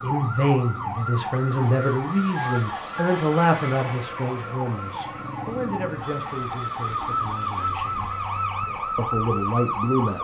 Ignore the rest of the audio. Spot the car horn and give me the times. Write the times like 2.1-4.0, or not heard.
not heard.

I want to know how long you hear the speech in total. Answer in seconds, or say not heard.
9 s.